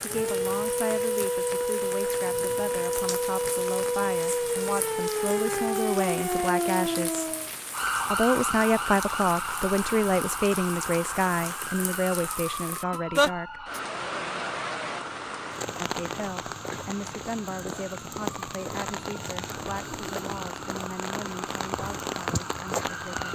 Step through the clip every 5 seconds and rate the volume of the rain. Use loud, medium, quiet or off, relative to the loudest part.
medium, medium, loud, loud, loud.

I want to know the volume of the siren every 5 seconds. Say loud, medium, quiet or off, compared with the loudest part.
loud, loud, medium, quiet, quiet.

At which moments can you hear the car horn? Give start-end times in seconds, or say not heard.
not heard.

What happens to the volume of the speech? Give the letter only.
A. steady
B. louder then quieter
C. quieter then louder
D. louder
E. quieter
B.